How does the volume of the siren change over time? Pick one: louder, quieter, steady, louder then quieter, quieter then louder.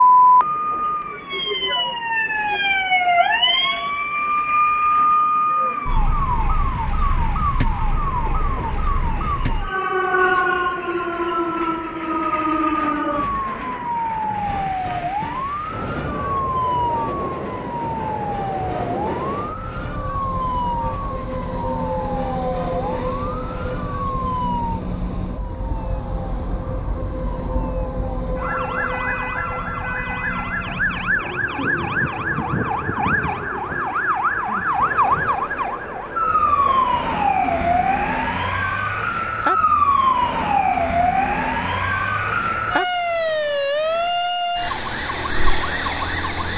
quieter then louder.